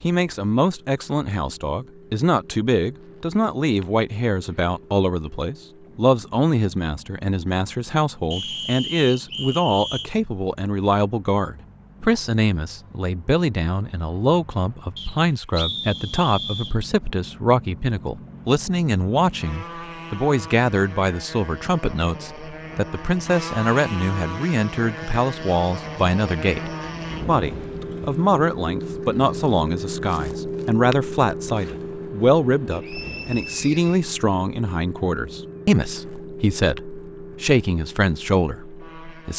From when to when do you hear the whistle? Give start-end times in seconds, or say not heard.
8.3-10.1, 14.9-16.8, 32.7-34.1.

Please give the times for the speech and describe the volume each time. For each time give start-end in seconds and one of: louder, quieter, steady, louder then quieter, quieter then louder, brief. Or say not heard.
0.0-39.3 steady.